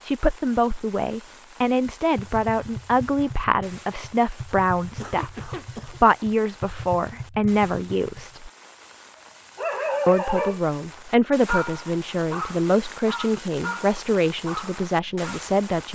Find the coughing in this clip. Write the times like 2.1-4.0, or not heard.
4.8-6.0.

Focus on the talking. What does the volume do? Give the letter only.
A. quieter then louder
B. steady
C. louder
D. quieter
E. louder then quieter
B.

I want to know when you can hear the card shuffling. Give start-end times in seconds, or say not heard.
not heard.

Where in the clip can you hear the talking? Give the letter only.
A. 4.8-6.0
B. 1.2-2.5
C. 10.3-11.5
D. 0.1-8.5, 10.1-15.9
D.